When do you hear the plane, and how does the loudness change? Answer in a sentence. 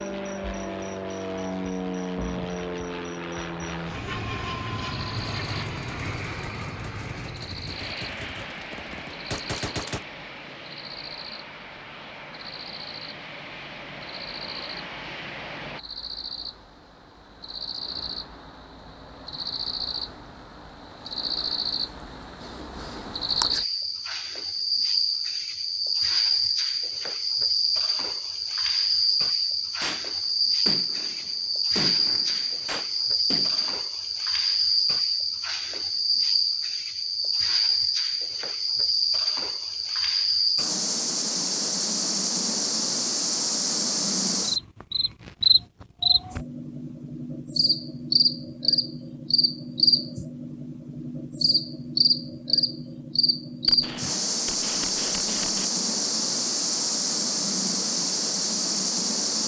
You can hear the plane from 0.0 to 15.8 s, getting quieter.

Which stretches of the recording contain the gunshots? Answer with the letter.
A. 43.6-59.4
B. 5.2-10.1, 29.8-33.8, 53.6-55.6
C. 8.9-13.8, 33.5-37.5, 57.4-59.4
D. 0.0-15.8
B.